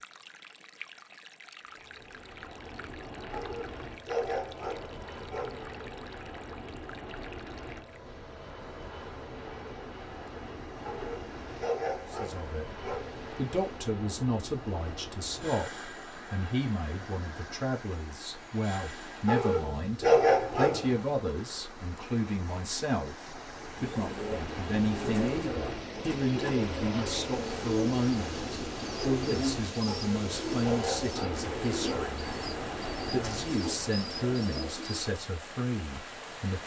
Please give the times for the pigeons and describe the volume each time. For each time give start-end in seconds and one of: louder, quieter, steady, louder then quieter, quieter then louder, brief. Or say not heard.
23.8-35.0 steady.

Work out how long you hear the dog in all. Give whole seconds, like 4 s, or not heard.
9 s.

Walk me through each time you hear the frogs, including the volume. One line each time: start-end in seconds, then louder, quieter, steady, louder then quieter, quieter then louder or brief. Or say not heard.
not heard.